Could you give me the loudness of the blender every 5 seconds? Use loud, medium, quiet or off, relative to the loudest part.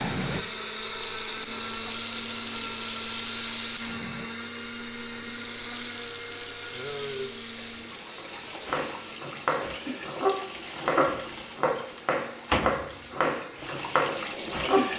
loud, medium, quiet.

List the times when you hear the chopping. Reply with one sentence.
You can hear the chopping from 8.2 to 14.8 s.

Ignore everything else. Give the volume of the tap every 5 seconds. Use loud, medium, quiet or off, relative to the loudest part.
loud, medium, loud.